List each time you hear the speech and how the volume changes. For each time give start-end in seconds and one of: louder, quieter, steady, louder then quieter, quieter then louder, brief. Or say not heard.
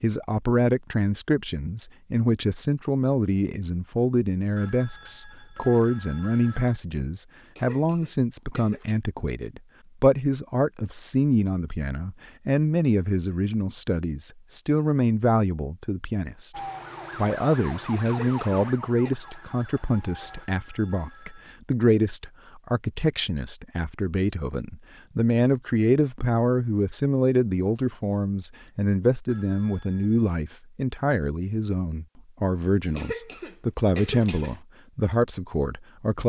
0.0-36.2 steady.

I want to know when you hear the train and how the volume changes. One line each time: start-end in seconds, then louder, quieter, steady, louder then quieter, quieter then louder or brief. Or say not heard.
not heard.